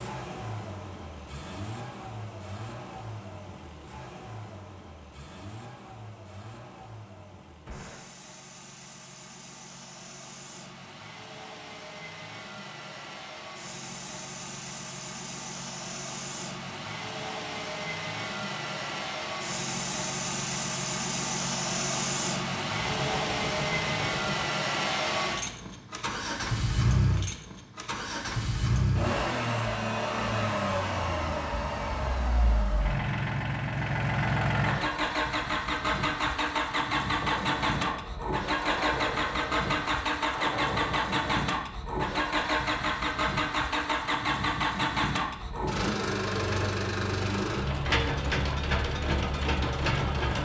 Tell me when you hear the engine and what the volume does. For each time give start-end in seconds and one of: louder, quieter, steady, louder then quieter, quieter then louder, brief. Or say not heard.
0.0-50.3 louder.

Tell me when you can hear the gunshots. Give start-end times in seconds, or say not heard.
7.7-8.1, 22.8-24.6, 37.2-41.5.